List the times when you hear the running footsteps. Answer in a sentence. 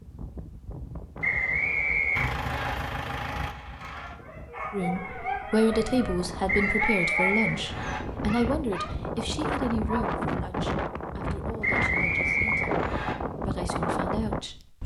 You can't hear the running footsteps here.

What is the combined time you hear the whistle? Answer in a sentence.
You can hear the whistle for 5 seconds altogether.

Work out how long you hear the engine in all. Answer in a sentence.
The engine can be heard for 2 seconds in total.